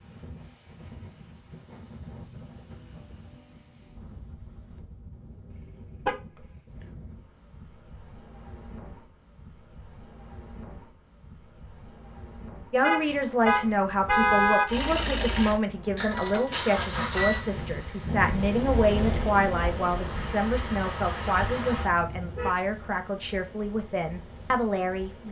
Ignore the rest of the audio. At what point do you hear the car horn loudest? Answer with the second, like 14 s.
14 s.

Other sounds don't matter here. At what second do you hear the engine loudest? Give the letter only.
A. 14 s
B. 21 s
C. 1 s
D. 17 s
D.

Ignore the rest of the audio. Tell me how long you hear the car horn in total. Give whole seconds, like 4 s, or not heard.
4 s.